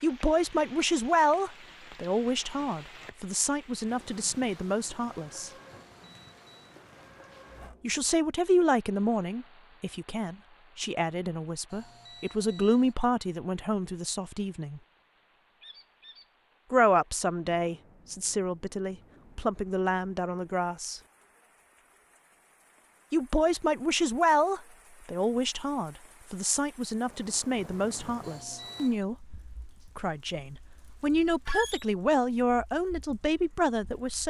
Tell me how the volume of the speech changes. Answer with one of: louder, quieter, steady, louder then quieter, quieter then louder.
steady.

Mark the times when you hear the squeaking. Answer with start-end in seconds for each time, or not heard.
7.5-8.0, 15.6-16.2, 31.4-31.9.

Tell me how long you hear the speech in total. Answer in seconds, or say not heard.
27 s.